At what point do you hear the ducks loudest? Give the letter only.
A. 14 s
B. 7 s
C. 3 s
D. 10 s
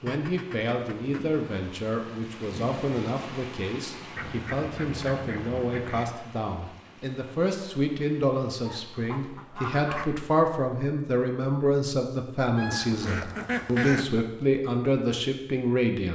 A.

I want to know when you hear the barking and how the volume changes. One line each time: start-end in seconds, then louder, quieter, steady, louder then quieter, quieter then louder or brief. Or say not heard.
not heard.